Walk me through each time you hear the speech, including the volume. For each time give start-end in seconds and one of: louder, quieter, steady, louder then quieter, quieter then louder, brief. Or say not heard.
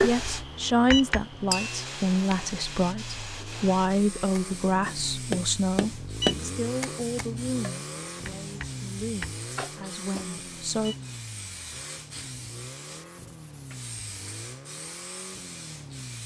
0.0-10.9 quieter.